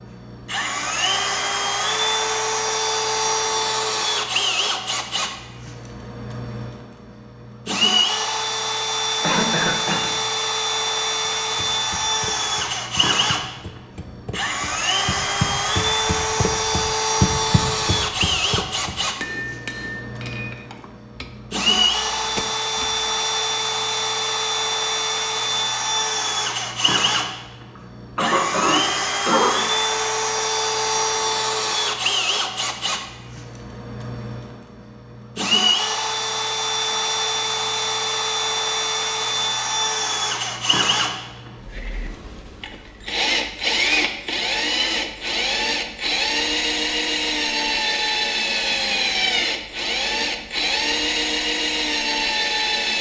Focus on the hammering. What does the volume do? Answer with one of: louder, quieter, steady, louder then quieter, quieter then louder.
louder then quieter.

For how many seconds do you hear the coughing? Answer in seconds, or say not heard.
3 s.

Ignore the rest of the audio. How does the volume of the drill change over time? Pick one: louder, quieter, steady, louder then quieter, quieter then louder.
steady.